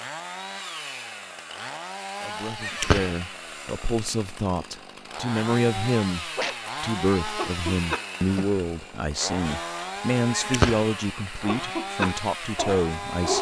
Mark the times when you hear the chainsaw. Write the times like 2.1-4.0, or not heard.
0.0-13.3.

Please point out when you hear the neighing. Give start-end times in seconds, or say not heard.
2.6-3.1, 10.3-10.8.